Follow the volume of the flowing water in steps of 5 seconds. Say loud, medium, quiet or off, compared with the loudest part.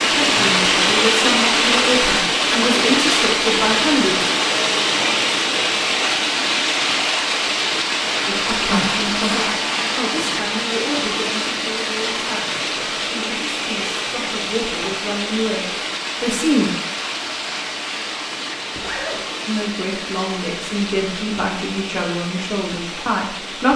loud, loud, medium, medium, quiet.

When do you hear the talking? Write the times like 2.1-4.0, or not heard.
0.0-4.2, 8.2-16.8, 19.4-23.7.